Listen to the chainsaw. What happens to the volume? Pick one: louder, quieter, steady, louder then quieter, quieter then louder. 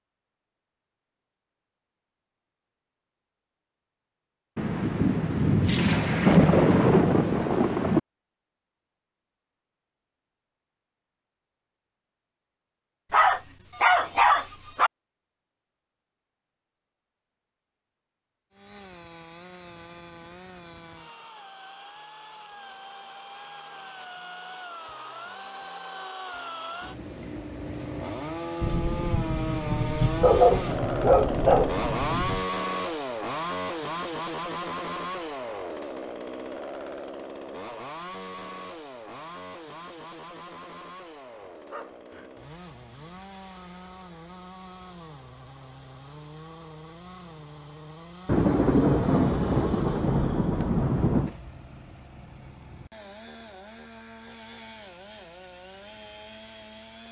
louder then quieter.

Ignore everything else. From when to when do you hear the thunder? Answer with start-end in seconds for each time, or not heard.
4.5-8.0, 28.6-32.5, 48.2-51.4.